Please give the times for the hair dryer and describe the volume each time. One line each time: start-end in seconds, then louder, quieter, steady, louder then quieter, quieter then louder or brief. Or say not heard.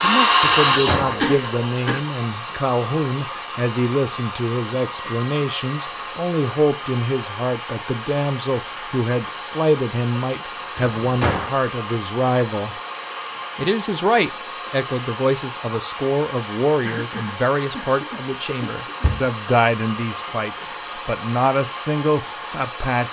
0.0-23.0 quieter.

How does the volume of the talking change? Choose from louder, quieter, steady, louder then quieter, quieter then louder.
steady.